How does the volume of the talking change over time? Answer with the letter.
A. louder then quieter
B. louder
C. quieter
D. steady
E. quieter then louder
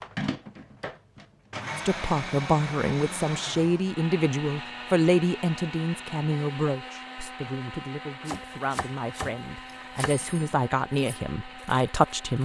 E.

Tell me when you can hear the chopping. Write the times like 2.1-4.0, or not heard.
8.2-10.2.